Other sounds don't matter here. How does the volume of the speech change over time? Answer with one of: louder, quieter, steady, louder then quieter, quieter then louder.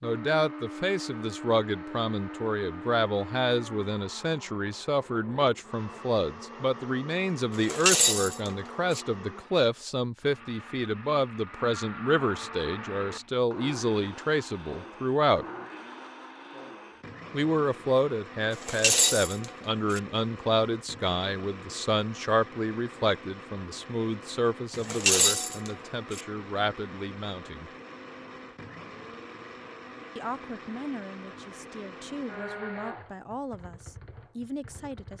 quieter.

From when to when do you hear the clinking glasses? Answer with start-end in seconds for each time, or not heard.
7.5-9.0, 18.6-20.0, 24.8-26.2.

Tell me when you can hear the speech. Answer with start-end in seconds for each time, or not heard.
0.0-15.4, 17.3-27.7, 30.1-35.1.